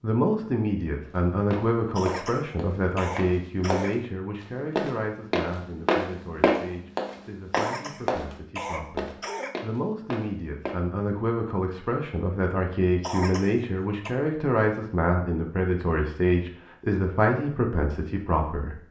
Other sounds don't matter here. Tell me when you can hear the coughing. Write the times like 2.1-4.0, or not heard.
1.9-4.0, 7.5-9.6, 13.0-14.1.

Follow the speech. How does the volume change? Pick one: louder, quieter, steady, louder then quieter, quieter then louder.
quieter then louder.